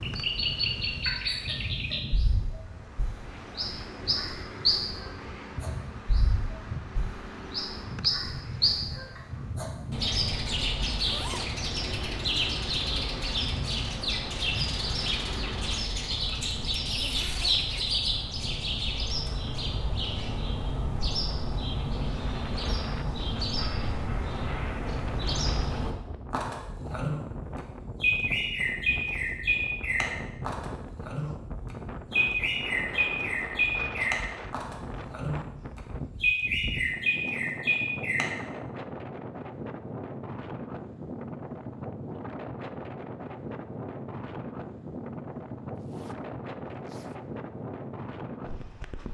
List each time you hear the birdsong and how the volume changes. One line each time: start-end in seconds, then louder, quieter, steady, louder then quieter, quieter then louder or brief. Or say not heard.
0.0-38.4 steady.